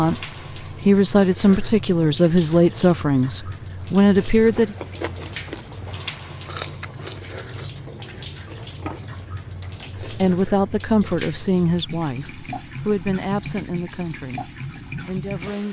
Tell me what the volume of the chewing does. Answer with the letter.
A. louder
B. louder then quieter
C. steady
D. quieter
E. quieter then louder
E.